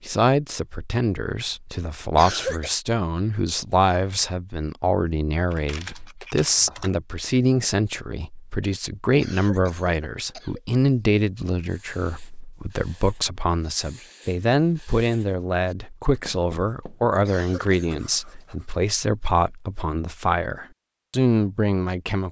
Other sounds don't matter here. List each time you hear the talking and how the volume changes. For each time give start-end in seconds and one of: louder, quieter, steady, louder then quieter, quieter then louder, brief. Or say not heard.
0.0-22.2 steady.